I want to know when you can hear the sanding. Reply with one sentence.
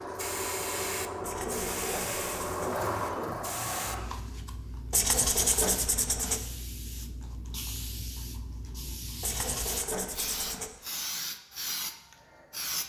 You can hear the sanding from 1.2 to 2.7 s, from 4.9 to 6.4 s and from 9.2 to 10.7 s.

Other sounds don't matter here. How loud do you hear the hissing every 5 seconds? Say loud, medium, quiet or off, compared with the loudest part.
loud, medium, loud.